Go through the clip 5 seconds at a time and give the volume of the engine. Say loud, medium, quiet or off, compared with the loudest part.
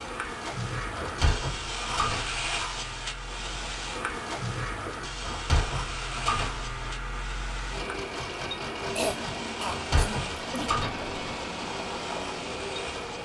medium, loud, loud.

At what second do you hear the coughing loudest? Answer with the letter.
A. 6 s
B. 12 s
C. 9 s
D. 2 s
C.